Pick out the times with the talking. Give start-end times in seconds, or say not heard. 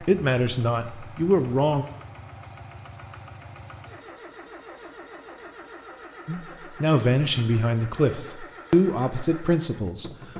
0.0-1.9, 6.2-10.1.